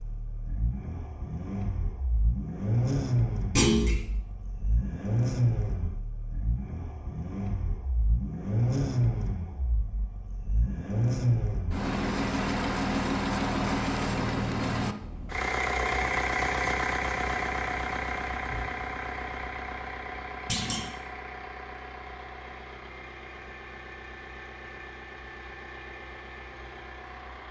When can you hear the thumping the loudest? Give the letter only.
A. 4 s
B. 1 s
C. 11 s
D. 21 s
A.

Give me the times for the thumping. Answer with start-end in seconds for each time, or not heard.
3.5-4.0, 20.4-20.9.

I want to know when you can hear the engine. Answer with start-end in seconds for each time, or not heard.
0.0-27.4.